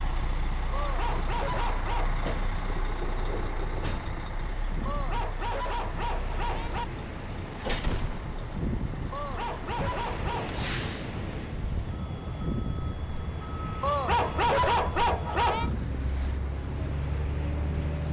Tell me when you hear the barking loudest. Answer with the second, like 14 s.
15 s.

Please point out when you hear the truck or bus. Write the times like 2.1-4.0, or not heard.
0.0-18.0.